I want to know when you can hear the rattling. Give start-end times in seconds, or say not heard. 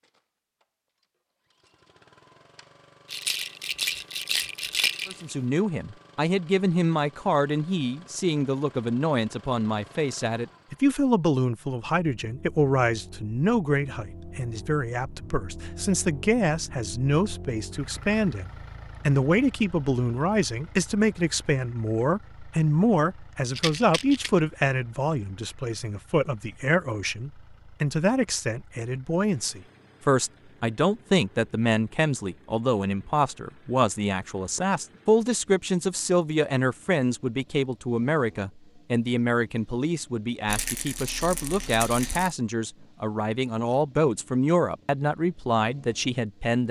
3.0-5.3, 23.6-24.3, 40.5-42.4.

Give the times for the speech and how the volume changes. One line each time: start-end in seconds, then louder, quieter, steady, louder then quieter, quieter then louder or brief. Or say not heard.
5.0-46.6 steady.